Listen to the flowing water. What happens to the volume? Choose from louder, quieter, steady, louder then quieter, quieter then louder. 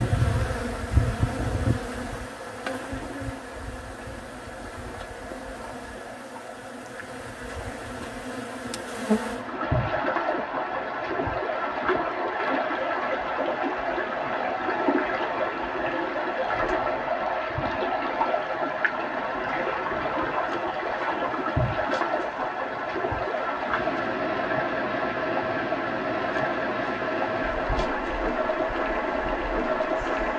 louder.